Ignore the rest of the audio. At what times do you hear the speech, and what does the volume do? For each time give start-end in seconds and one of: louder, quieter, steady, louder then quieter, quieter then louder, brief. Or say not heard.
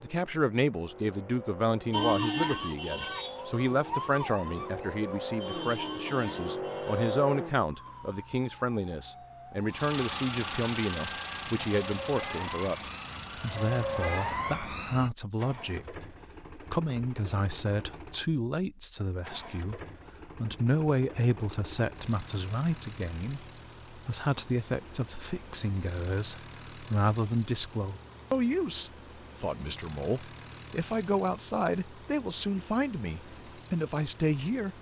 0.0-34.7 steady.